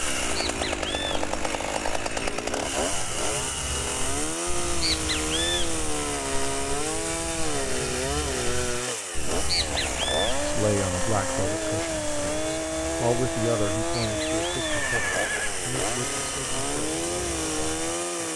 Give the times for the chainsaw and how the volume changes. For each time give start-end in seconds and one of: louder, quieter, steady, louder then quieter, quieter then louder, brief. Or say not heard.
0.0-18.3 steady.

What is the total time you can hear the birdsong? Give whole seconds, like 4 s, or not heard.
18 s.